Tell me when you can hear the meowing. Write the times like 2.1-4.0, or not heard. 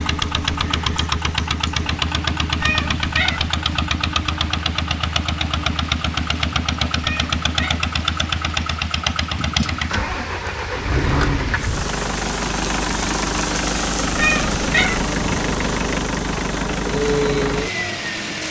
2.6-3.5, 7.0-7.8, 14.2-15.1.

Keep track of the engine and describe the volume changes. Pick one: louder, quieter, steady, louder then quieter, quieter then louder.
steady.